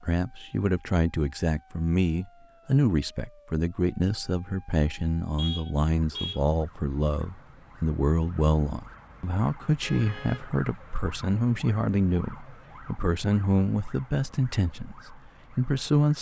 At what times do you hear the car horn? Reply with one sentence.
The car horn can be heard from 5.3 to 6.4 s and from 9.8 to 10.4 s.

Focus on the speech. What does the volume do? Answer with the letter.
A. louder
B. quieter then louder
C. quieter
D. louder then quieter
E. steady
E.